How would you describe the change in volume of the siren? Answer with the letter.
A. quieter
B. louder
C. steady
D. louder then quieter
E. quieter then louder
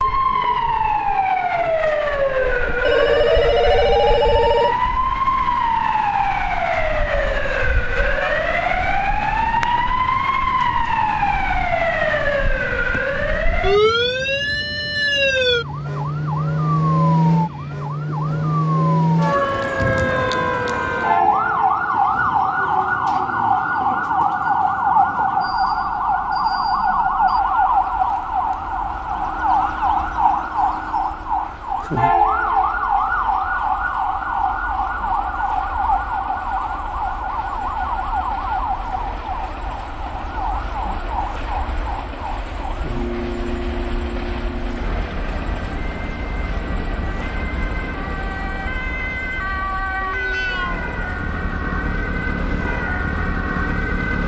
A.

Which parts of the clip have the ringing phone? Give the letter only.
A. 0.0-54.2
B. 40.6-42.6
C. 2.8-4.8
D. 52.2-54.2
C.